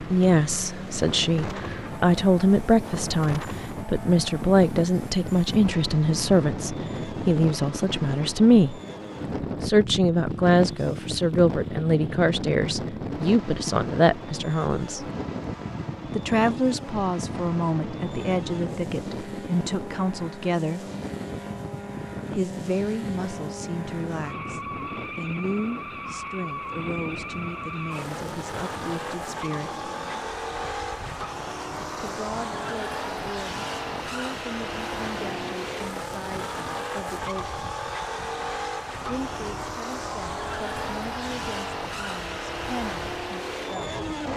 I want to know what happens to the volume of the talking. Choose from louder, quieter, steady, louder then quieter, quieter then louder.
quieter.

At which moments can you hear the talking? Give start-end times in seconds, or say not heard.
0.0-8.8, 9.6-15.1, 16.1-20.9, 22.4-29.9, 32.0-37.6, 39.0-44.0.